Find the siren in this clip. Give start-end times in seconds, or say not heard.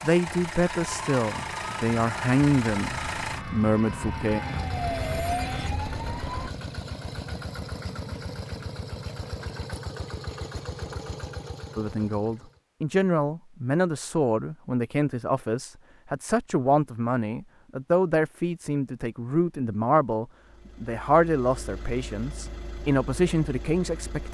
0.1-6.5.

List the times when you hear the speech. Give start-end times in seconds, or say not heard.
0.0-4.4, 11.8-24.3.